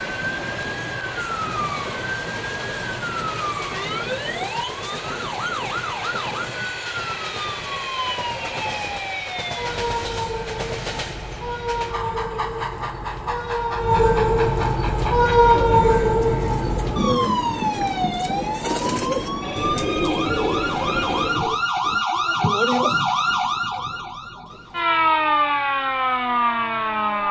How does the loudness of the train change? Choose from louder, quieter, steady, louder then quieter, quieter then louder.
steady.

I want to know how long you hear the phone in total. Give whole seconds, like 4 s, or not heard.
3 s.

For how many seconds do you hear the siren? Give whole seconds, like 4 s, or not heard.
27 s.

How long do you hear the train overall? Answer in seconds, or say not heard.
22 s.